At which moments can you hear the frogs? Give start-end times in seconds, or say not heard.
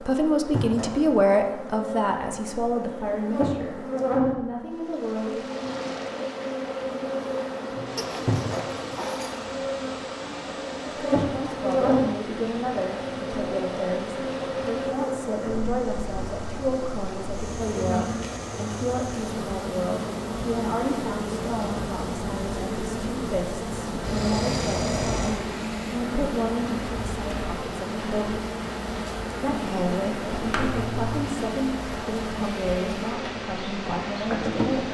not heard.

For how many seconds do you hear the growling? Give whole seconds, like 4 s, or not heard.
3 s.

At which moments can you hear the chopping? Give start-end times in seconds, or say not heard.
not heard.